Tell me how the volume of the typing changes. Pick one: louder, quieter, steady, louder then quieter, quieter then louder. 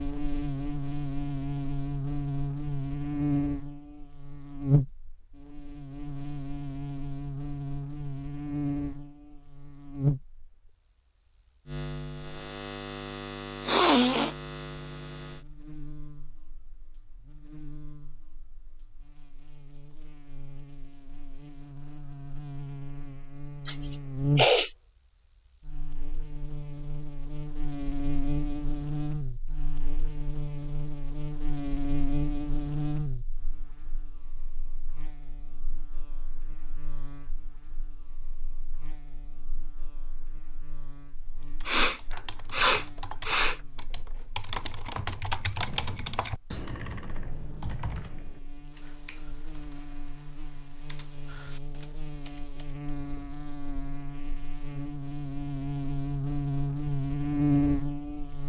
louder then quieter.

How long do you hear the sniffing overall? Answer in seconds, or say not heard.
4 s.